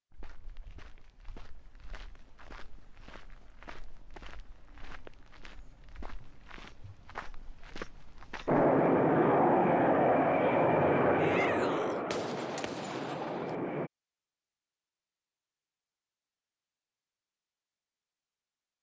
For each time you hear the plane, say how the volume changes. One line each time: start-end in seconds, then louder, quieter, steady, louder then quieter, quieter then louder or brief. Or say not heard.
8.4-13.9 quieter.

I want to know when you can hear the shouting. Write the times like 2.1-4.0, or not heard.
11.2-12.1.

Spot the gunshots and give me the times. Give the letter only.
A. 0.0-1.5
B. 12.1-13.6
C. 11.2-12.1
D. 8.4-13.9
B.